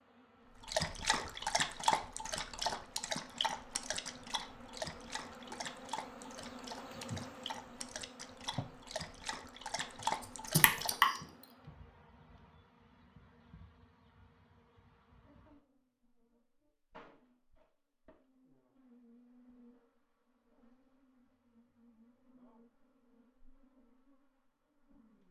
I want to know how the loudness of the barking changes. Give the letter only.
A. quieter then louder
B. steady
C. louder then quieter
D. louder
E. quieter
A.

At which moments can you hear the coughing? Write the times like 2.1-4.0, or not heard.
10.2-11.2.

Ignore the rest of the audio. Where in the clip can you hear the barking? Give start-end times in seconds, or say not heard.
0.7-11.2.